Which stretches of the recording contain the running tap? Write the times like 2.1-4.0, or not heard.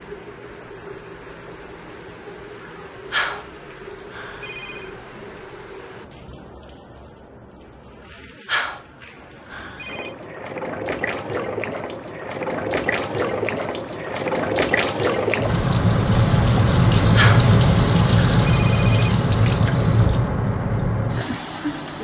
0.0-21.9.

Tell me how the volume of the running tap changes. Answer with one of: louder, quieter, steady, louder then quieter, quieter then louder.
louder.